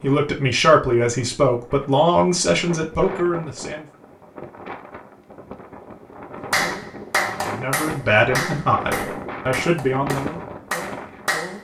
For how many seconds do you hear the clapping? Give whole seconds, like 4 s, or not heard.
5 s.